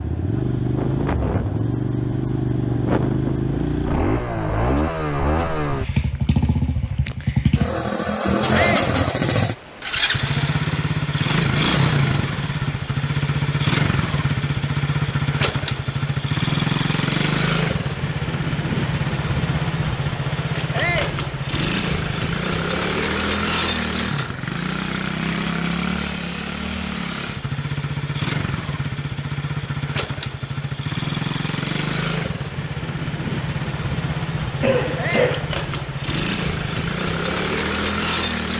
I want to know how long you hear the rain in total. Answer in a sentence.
The rain can't be heard in this clip.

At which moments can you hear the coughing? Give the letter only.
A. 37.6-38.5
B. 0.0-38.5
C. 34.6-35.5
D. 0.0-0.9
C.